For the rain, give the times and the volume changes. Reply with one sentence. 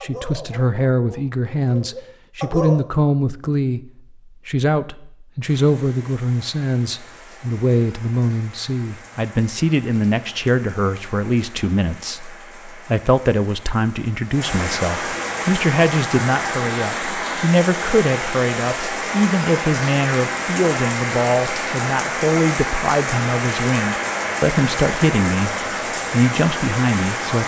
You can hear the rain from 5.5 to 27.4 s, getting louder.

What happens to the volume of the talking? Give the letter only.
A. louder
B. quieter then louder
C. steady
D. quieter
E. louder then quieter
C.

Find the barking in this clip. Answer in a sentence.
You can hear the barking from 0.0 to 2.8 s.